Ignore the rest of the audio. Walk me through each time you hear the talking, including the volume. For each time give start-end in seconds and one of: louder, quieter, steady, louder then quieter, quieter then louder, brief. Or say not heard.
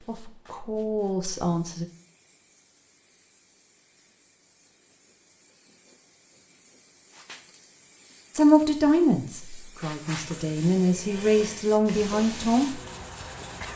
0.0-1.9 brief
8.3-12.8 quieter then louder.